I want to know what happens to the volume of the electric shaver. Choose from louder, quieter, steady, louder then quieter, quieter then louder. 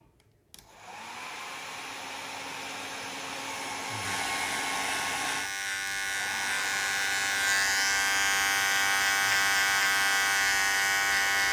louder.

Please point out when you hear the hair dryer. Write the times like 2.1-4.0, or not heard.
0.0-11.4.